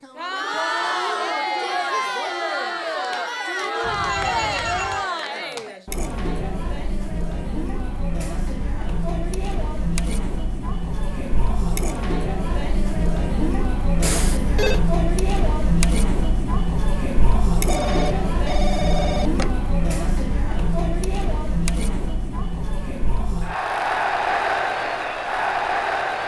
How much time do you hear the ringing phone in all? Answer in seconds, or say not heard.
4 s.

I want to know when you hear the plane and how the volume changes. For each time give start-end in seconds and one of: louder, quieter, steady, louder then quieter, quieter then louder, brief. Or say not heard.
not heard.